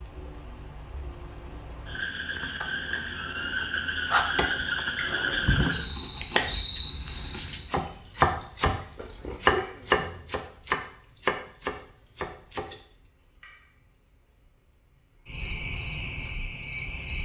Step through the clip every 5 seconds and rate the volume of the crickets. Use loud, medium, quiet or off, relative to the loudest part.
loud, loud, medium, medium.